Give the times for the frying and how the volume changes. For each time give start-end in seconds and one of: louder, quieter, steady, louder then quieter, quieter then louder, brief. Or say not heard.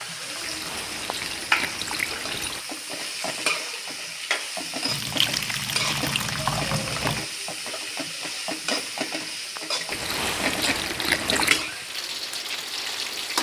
0.0-13.3 steady.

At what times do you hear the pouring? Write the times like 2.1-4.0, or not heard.
0.4-2.6, 4.8-7.2, 9.9-11.7.